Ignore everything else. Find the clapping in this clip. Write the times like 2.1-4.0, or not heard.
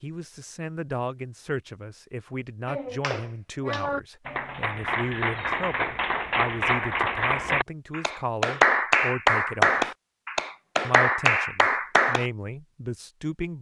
2.6-12.2.